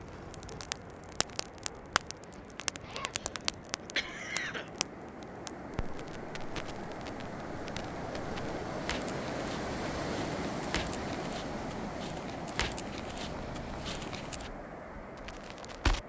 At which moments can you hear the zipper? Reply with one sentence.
The zipper can be heard from 2.2 to 3.1 s.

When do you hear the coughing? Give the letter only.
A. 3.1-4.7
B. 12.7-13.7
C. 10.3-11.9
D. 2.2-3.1
A.